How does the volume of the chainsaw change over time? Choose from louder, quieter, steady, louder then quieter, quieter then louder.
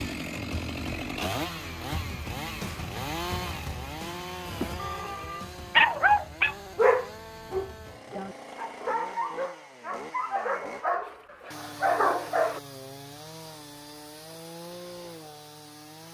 quieter.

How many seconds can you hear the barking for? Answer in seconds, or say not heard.
8 s.